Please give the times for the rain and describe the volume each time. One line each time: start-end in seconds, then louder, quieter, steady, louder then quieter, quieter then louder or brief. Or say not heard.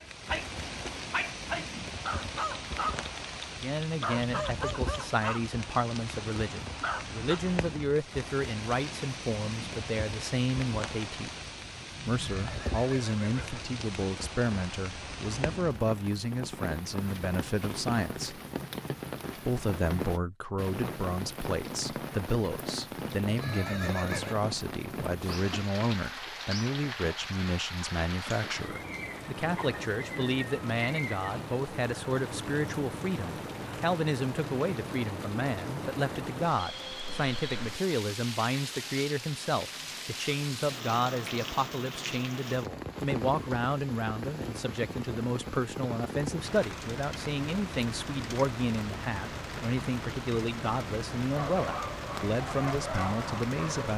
0.0-53.9 steady.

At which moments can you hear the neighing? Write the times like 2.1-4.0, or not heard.
12.2-13.8, 23.4-24.4, 36.5-37.5.